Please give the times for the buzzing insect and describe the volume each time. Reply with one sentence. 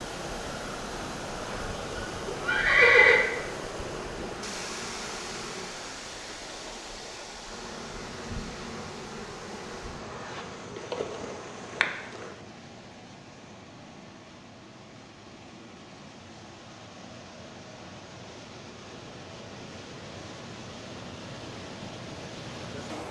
You can hear the buzzing insect briefly from 3.9 to 5.8 s; and from 7.5 to 12.3 s, getting louder.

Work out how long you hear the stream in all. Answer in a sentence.
You can hear the stream for 23 seconds altogether.